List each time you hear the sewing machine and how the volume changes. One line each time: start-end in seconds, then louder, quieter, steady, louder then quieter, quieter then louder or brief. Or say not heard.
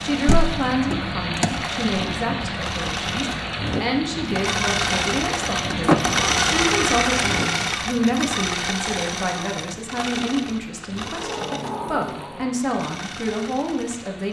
0.0-14.2 louder then quieter.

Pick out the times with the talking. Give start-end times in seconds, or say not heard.
0.0-14.2.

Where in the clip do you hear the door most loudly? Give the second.
6 s.